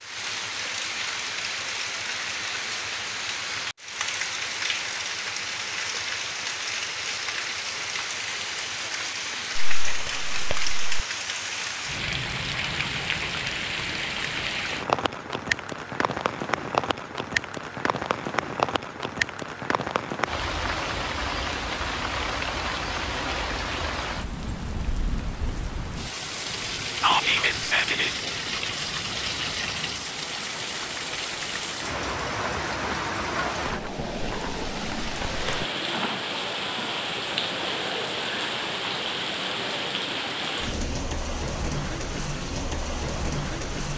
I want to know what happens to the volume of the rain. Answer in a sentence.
The volume of the rain stays about the same.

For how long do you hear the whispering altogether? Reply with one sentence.
You can hear the whispering for 2 seconds altogether.